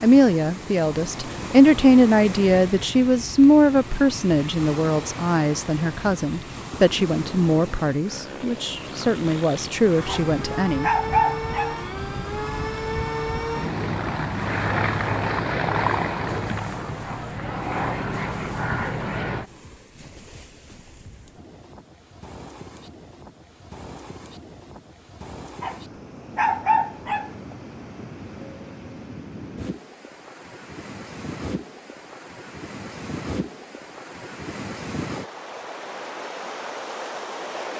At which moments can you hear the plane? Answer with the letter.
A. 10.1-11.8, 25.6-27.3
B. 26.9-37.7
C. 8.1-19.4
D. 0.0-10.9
C.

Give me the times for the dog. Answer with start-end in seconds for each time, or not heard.
10.1-11.8, 25.6-27.3.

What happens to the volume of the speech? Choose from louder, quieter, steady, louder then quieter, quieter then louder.
quieter.